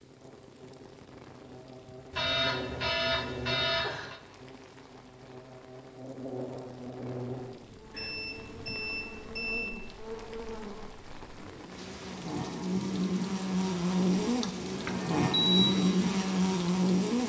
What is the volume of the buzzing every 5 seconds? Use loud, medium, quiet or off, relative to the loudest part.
quiet, quiet, medium, loud.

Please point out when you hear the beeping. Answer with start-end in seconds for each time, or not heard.
2.1-4.2, 7.9-9.8, 14.2-15.8.